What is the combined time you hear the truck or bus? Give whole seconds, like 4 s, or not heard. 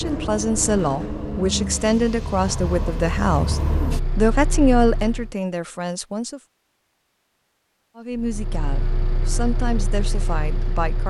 8 s.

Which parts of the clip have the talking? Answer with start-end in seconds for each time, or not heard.
0.0-6.4, 8.0-11.0.